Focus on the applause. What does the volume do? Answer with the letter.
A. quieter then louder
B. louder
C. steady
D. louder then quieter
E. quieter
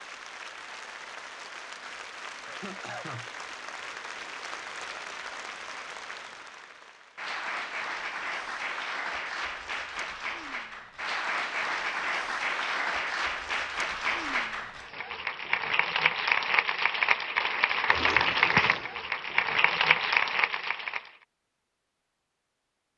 B.